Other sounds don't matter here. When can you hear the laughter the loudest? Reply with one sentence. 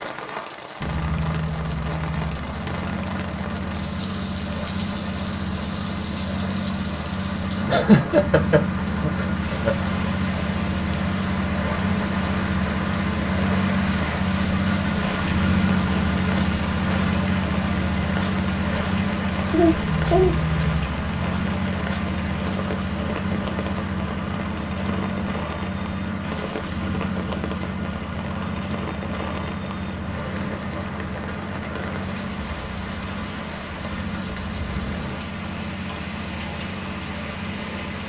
The loudest moment of the laughter is at 8 seconds.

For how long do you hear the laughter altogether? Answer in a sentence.
The laughter can be heard for 3 seconds in total.